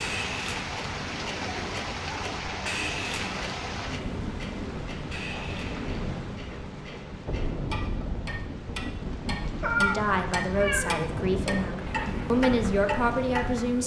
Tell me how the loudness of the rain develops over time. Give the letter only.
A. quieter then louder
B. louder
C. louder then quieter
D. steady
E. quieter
D.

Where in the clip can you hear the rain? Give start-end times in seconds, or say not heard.
0.0-13.8.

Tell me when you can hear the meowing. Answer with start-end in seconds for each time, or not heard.
9.6-11.1.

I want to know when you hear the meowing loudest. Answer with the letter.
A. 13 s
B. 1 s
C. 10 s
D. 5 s
C.